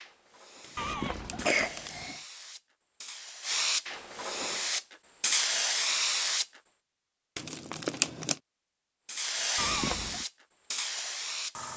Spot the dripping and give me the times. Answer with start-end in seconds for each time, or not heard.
not heard.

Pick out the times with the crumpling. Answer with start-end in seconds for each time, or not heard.
0.6-2.0, 7.3-8.4.